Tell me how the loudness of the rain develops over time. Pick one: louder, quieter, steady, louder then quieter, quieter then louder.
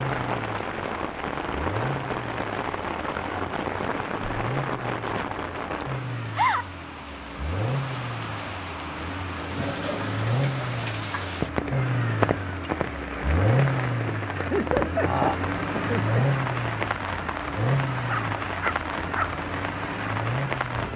steady.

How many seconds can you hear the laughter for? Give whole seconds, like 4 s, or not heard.
2 s.